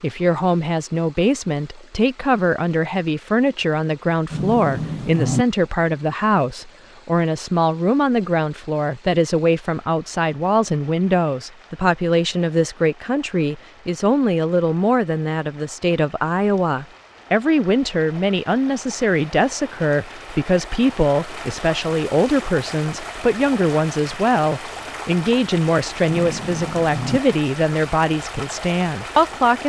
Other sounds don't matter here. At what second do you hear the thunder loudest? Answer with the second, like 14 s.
5 s.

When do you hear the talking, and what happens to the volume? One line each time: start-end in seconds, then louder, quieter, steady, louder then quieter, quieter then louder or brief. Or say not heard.
0.0-29.6 steady.